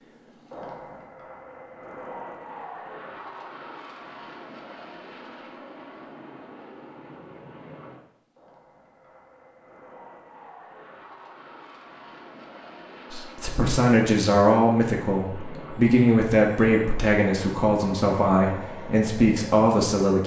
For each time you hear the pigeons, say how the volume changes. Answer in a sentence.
The pigeons can't be heard in this clip.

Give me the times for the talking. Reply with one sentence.
You can hear the talking from 13.1 to 20.2 s.